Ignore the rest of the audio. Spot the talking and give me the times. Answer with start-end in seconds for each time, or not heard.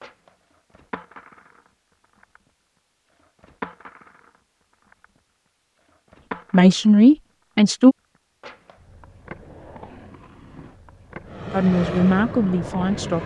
6.5-8.0, 11.5-13.2.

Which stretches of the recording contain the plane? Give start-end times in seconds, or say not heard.
11.2-13.2.